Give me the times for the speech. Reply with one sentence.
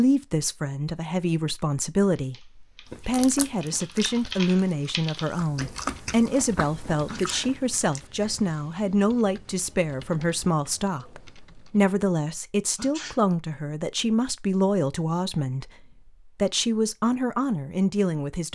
You can hear the speech from 0.0 to 18.5 s.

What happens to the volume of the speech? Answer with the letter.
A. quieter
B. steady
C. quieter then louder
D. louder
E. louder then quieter
B.